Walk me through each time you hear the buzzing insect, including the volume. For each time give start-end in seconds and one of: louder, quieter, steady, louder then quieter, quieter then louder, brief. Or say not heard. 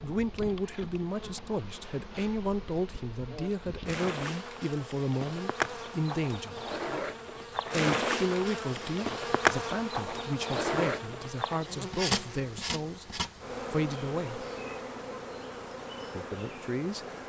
0.0-17.2 louder then quieter.